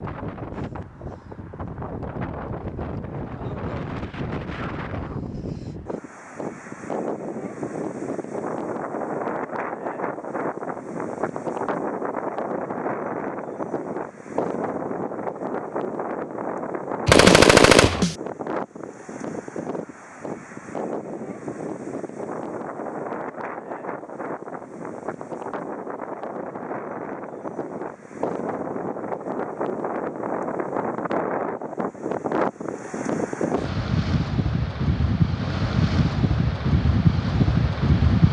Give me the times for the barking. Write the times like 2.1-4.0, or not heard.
not heard.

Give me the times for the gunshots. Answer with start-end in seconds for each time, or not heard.
17.1-18.1.